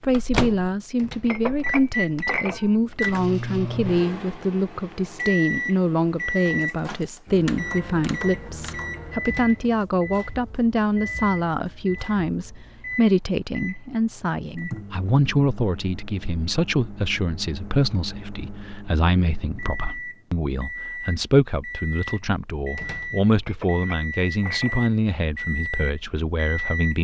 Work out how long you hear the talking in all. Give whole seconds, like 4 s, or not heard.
27 s.